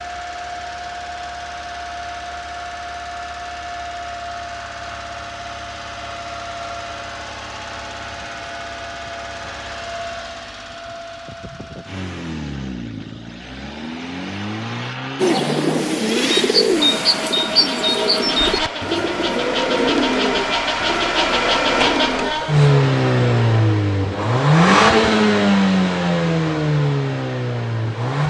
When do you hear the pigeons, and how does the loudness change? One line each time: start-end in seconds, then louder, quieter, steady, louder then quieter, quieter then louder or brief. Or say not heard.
15.2-22.3 quieter.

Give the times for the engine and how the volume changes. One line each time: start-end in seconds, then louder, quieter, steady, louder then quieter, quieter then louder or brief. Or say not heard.
0.0-28.2 louder.